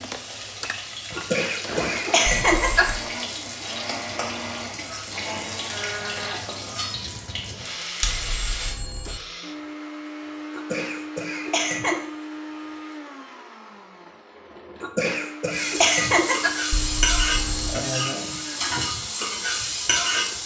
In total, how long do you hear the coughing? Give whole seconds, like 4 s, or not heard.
5 s.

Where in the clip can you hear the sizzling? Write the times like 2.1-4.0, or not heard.
0.0-8.8, 15.5-20.4.